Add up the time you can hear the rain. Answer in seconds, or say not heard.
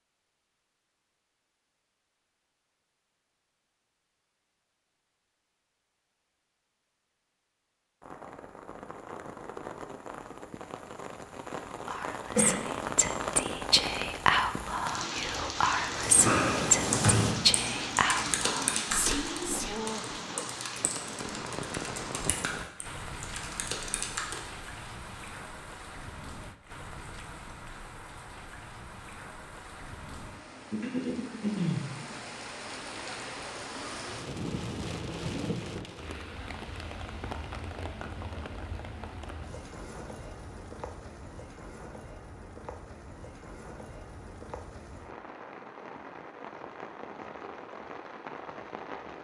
41 s.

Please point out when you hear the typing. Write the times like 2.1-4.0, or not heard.
15.9-24.4.